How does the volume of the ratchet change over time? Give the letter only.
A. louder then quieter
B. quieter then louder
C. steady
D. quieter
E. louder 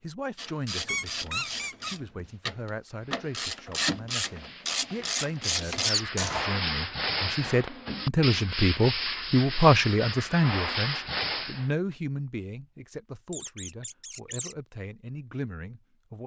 E.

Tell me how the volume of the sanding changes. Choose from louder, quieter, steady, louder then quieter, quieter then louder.
louder.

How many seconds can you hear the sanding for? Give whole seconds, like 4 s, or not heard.
9 s.